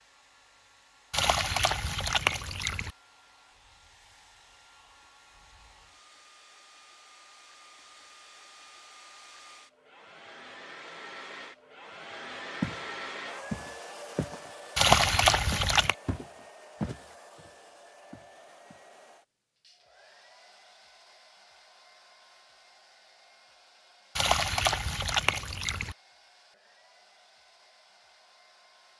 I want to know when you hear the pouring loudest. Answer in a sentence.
The volume of the pouring peaks at 15 seconds.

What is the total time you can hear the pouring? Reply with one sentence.
You can hear the pouring for 5 seconds altogether.